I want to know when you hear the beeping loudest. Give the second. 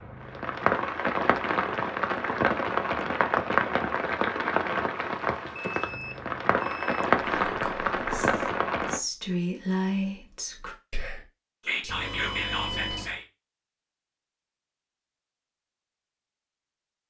13 s.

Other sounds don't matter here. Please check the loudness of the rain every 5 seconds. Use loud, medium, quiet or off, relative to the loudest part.
loud, loud, off, off.